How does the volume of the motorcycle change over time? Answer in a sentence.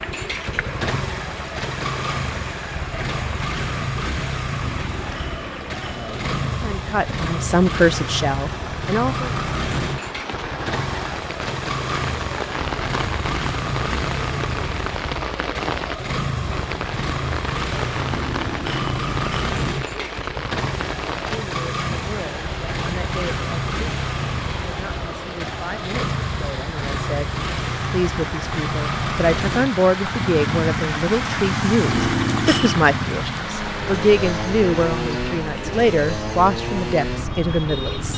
The volume of the motorcycle stays about the same.